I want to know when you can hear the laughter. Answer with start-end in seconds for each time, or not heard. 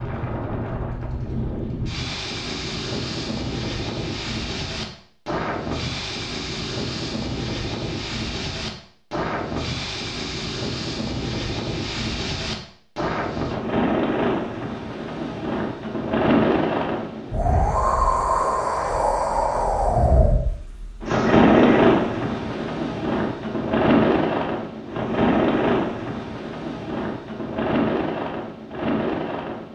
21.1-21.9.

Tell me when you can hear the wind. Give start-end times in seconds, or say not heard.
0.0-29.7.